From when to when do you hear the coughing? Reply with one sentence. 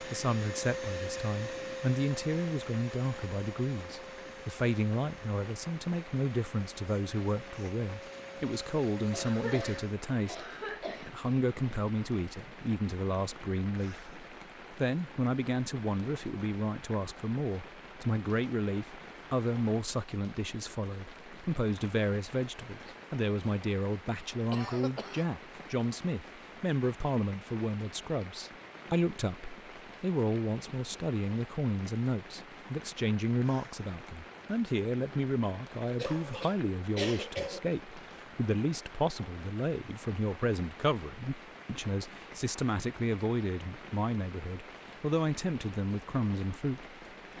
The coughing can be heard from 9.1 to 11.1 s, from 24.5 to 25.3 s and from 36.0 to 37.8 s.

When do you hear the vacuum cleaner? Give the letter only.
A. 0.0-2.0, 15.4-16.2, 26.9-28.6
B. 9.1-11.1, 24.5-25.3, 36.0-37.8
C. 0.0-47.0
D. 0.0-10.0
D.